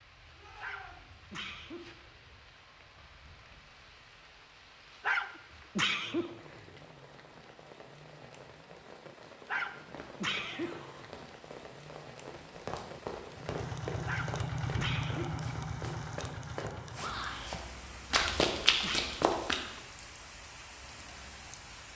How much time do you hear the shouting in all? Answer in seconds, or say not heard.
2 s.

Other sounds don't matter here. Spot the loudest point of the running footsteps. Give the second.
19 s.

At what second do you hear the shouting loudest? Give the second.
17 s.